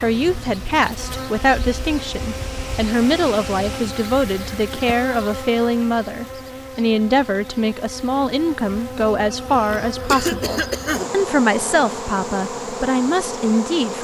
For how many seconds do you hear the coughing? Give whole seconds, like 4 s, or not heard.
2 s.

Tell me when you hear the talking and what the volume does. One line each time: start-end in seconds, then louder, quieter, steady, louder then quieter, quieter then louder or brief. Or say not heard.
0.0-14.0 steady.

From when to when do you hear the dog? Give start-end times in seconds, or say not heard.
not heard.